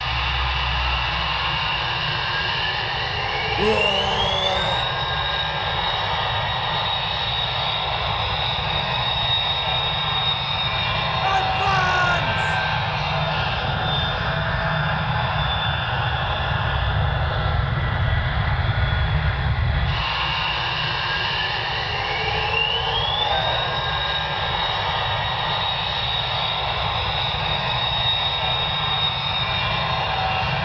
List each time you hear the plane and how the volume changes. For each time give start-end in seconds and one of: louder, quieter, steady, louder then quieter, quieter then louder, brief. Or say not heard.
0.0-30.6 steady.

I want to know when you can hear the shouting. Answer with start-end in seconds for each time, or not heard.
3.5-4.8, 11.2-12.6, 23.1-23.9.